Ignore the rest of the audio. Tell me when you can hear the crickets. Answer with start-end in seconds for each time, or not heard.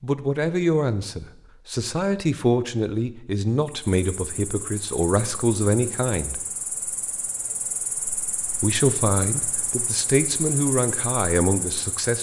3.6-12.1.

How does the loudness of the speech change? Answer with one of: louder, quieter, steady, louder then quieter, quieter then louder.
steady.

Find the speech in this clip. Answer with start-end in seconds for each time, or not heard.
0.0-6.4, 8.6-12.1.